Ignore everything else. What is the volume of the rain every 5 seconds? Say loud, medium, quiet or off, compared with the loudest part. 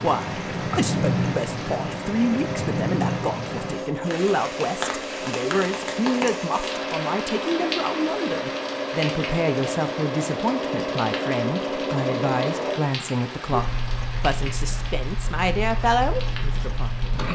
loud, loud, medium, quiet.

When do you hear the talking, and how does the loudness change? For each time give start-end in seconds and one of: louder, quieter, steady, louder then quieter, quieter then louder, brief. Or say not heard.
0.0-17.2 steady.